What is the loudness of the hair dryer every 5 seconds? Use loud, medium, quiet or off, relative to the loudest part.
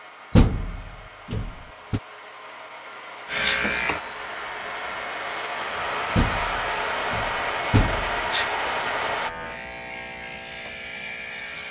medium, loud, off.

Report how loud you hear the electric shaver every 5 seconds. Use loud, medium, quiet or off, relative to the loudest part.
loud, medium, medium.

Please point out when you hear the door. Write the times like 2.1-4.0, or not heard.
0.3-2.0, 6.2-8.2.